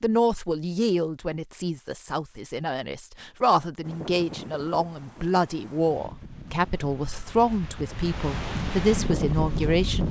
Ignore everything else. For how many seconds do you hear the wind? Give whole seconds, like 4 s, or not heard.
6 s.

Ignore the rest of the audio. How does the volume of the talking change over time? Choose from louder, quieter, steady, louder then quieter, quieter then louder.
steady.